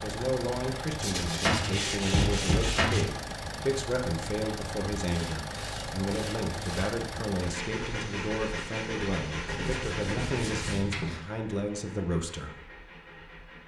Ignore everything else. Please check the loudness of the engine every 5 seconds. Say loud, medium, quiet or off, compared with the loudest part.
loud, loud, medium.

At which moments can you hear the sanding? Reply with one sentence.
The sanding can be heard from 1.0 to 3.0 s, from 5.0 to 7.0 s and from 9.4 to 11.2 s.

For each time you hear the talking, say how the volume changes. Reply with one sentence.
The talking can be heard from 0.0 to 12.6 s, at a steady volume.